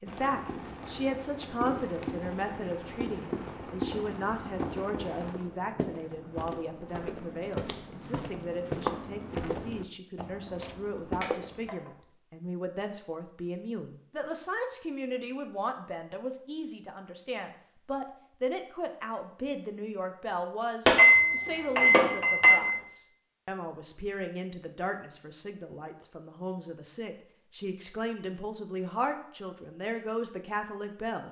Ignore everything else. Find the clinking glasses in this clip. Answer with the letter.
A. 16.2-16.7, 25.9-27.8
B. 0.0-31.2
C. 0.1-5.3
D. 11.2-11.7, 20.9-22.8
D.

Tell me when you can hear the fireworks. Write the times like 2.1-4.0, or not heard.
0.1-5.3.